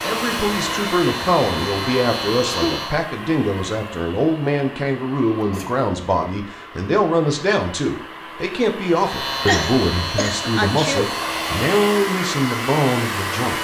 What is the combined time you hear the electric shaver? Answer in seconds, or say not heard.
7 s.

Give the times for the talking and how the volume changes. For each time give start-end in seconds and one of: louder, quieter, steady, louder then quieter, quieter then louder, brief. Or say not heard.
0.0-13.5 steady.